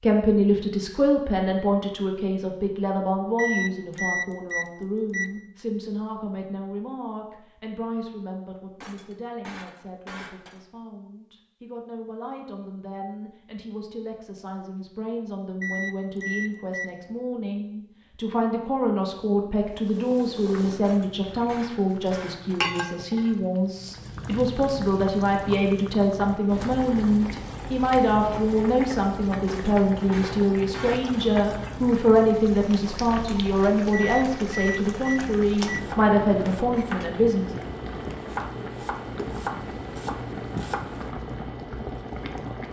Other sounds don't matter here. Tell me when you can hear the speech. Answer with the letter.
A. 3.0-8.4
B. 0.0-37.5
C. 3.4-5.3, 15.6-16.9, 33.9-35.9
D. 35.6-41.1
B.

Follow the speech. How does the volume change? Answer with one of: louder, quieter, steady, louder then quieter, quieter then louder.
quieter then louder.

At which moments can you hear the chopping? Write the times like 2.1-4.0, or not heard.
35.6-41.1.